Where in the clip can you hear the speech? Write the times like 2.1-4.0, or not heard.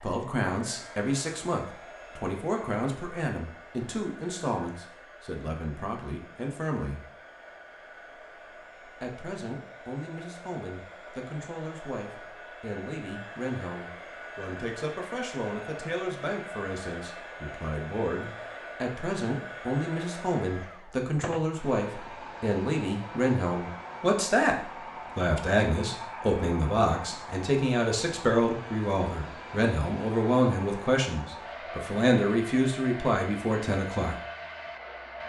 0.0-7.0, 8.9-34.1.